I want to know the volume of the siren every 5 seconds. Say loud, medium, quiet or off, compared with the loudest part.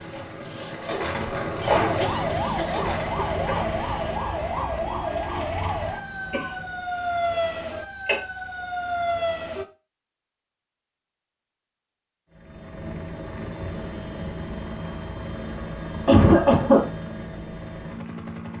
loud, loud, off, off.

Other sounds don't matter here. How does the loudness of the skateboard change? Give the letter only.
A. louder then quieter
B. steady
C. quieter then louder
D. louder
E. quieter
A.